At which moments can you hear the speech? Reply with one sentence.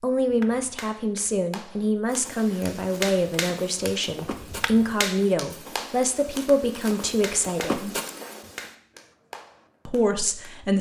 You can hear the speech from 0.0 to 8.0 s and from 9.8 to 10.7 s.